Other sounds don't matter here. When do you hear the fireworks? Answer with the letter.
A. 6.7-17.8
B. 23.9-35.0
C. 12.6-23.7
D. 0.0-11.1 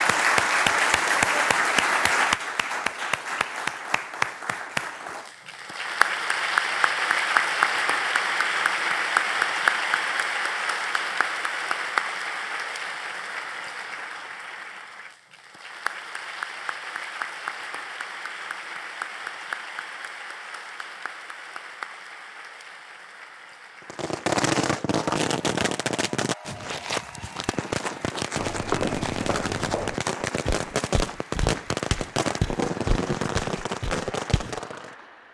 B.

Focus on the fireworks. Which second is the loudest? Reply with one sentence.
The loudest moment of the fireworks is at 24 seconds.